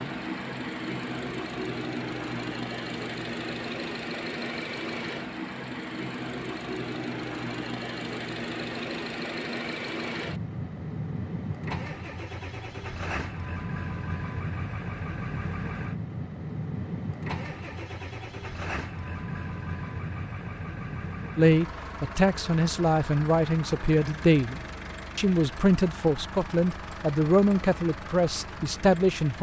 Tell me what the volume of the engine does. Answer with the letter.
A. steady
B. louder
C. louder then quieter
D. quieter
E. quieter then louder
D.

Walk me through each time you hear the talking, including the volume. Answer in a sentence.
You can hear the talking from 21.4 to 29.3 s, at a steady volume.